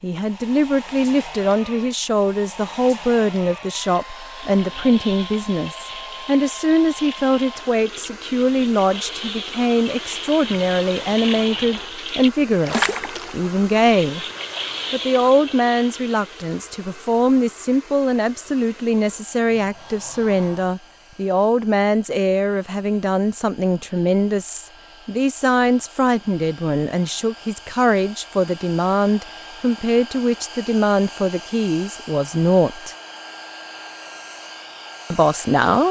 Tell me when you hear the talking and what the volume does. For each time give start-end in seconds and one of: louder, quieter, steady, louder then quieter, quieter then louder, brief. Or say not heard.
0.0-14.2 steady
14.9-33.0 steady
35.1-35.8 brief.